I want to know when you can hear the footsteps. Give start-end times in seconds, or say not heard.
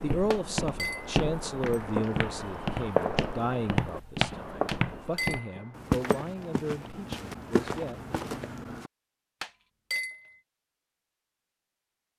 0.0-8.9.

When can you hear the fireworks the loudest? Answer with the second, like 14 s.
3 s.